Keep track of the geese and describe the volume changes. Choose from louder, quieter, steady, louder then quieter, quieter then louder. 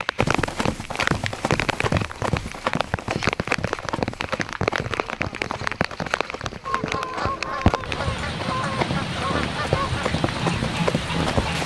steady.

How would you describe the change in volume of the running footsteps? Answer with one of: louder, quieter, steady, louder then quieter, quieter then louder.
quieter then louder.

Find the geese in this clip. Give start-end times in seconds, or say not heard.
6.7-11.6.